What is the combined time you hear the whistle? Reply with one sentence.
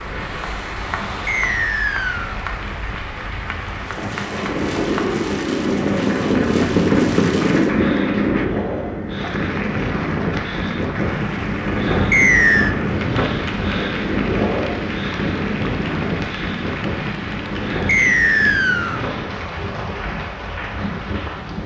You can hear the whistle for 3 seconds altogether.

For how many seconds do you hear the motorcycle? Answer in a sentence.
The motorcycle can be heard for 4 seconds in total.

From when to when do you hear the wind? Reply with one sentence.
The wind can be heard from 0.0 to 21.6 s.